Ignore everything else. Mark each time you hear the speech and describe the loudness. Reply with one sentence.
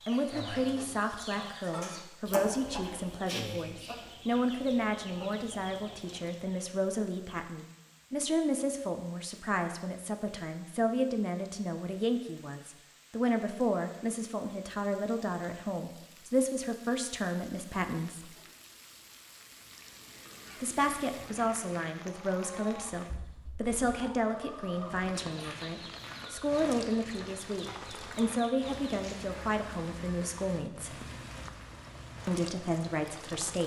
You can hear the speech from 0.1 to 18.3 s, at a steady volume; from 20.6 to 31.0 s, at a steady volume; and briefly from 32.2 to 33.6 s.